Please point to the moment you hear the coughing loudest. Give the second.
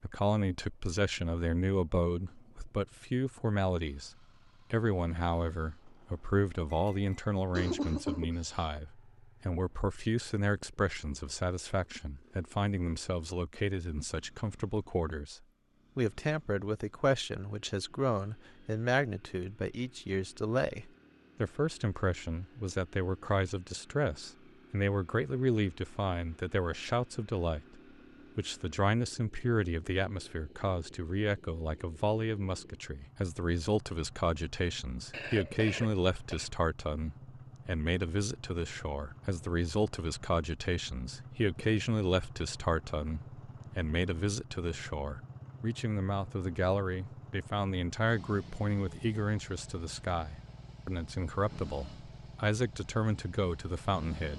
8 s.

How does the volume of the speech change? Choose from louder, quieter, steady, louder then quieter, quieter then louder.
steady.